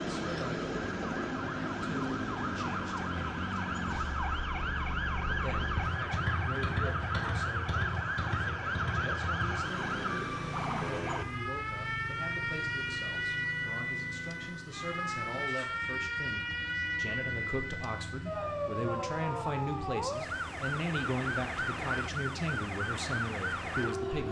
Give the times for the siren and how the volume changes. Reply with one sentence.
The siren can be heard from 0.0 to 24.2 s, at a steady volume.